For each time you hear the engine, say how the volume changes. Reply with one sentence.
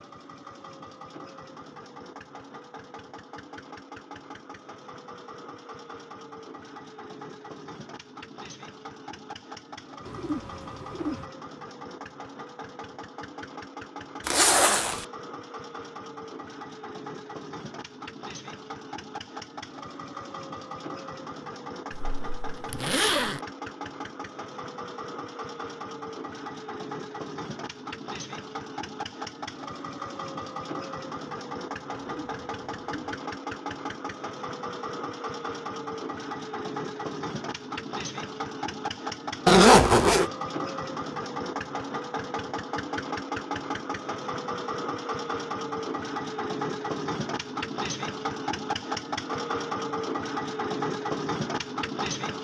The engine can be heard from 0.0 to 52.3 s, getting louder.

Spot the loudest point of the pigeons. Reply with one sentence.
The loudest moment of the pigeons is at 11 seconds.